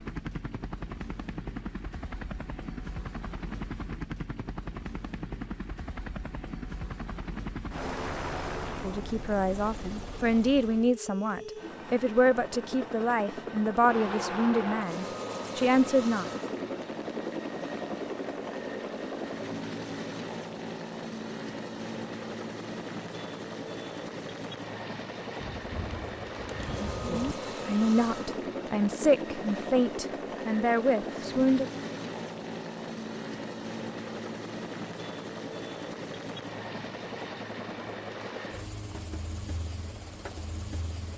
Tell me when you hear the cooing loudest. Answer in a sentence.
The volume of the cooing peaks at 27 seconds.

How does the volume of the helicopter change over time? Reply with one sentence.
The loudness of the helicopter stays about the same.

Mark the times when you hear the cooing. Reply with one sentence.
The cooing can be heard from 25.4 to 27.4 s.